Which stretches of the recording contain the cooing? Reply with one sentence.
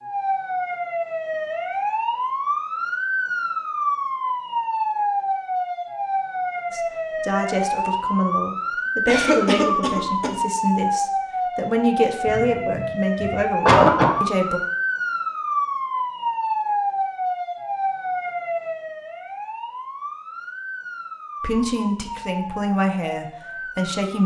The cooing can't be heard in this clip.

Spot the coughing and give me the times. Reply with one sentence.
The coughing can be heard from 9.1 to 10.3 s and from 12.2 to 14.2 s.